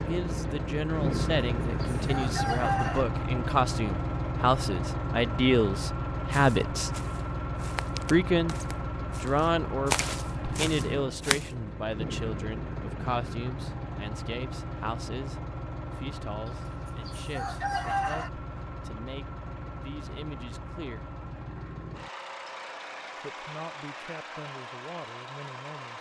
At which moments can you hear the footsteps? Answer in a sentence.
The footsteps can be heard from 6.3 to 11.4 s.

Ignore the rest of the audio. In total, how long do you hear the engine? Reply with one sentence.
The engine can be heard for 26 seconds in total.